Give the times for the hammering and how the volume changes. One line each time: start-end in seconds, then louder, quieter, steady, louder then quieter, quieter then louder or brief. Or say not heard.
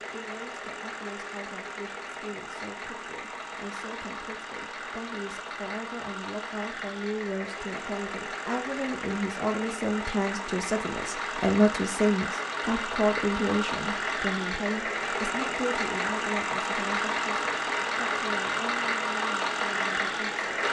not heard.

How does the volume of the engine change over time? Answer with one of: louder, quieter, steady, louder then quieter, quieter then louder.
louder.